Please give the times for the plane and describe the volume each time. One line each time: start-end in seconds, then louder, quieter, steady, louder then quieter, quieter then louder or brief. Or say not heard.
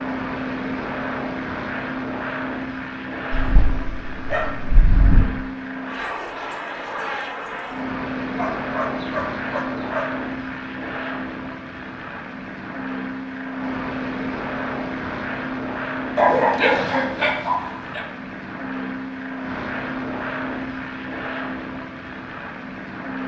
0.0-23.2 steady.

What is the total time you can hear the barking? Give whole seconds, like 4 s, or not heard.
6 s.